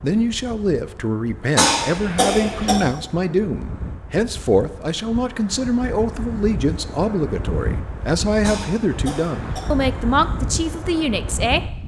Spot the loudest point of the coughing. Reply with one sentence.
The volume of the coughing peaks at 2 seconds.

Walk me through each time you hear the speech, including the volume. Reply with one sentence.
You can hear the speech from 0.0 to 11.6 s, at a steady volume.